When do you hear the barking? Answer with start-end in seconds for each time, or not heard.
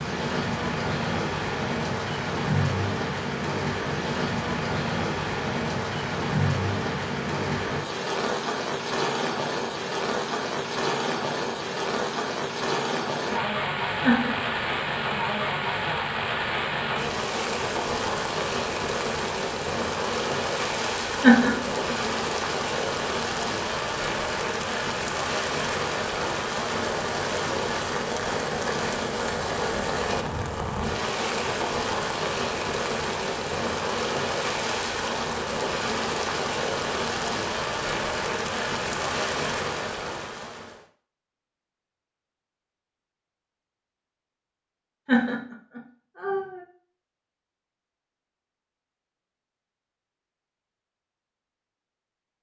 not heard.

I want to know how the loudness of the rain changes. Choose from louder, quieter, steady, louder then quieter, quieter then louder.
steady.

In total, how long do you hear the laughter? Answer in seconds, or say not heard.
3 s.